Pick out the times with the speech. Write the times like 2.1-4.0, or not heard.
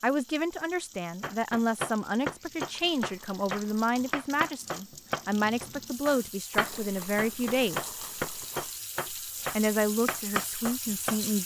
0.0-7.9, 9.1-11.4.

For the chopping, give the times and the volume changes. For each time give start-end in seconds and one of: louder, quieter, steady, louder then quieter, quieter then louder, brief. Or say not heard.
1.2-11.2 steady.